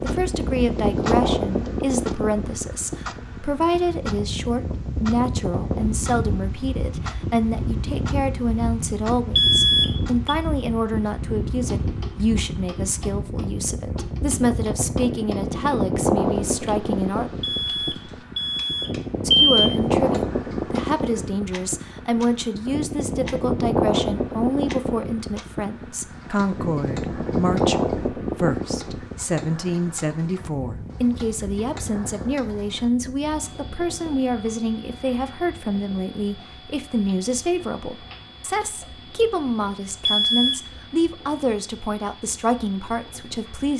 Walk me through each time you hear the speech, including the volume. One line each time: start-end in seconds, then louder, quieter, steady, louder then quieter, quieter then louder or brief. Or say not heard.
0.0-17.3 steady
19.2-43.7 steady.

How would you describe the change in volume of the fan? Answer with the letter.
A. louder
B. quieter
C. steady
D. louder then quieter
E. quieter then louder
B.